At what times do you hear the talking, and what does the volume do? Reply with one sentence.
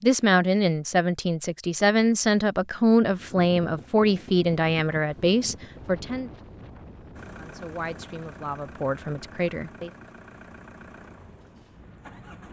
You can hear the talking from 0.0 to 6.3 s, at a steady volume; and briefly from 7.3 to 9.9 s.